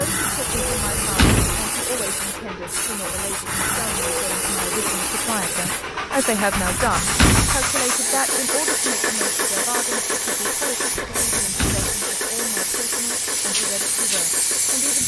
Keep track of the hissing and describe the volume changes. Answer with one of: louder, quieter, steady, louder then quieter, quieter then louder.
steady.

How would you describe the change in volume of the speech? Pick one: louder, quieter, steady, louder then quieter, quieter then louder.
louder then quieter.